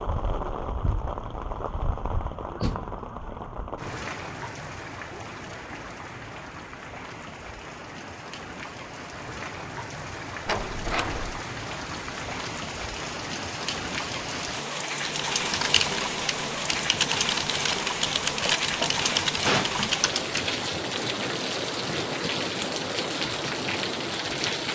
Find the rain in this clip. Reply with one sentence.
You can hear the rain from 0.0 to 24.6 s.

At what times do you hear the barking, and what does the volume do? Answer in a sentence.
The barking can't be heard in this clip.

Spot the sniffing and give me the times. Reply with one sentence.
The sniffing can't be heard in this clip.